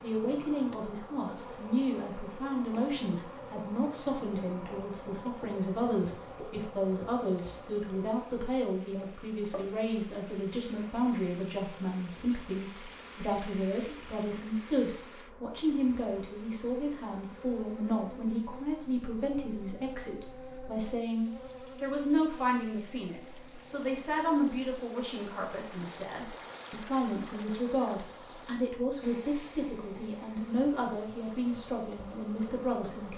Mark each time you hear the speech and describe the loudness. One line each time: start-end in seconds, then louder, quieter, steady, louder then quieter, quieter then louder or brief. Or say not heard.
0.0-33.1 steady.